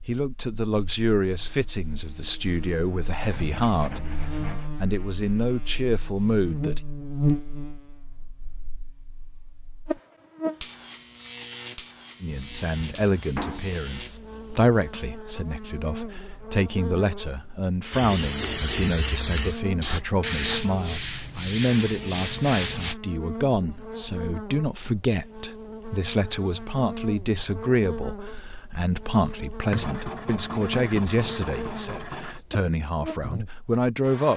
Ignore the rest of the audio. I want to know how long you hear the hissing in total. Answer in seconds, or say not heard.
3 s.